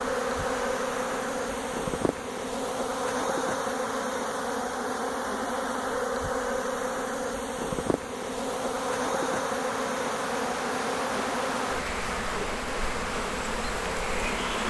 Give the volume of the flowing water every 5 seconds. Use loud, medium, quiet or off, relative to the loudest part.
medium, medium, loud.